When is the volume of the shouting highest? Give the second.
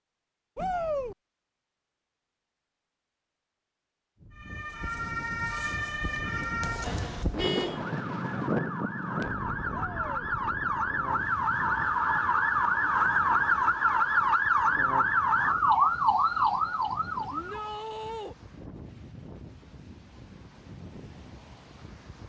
1 s.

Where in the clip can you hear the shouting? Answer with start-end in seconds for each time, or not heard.
0.6-1.1, 9.7-10.2, 17.3-18.4.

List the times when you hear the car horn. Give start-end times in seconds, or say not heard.
7.3-7.8.